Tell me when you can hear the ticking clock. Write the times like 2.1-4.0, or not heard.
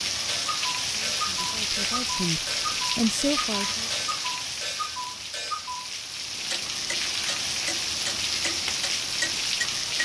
0.1-10.0.